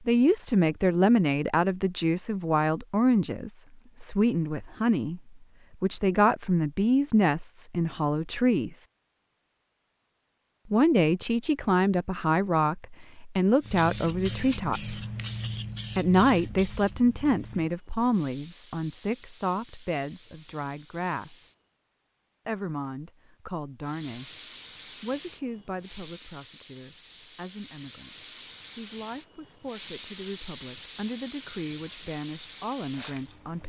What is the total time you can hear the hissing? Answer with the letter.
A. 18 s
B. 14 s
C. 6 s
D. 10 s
A.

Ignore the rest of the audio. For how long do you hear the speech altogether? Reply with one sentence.
The speech can be heard for 29 seconds in total.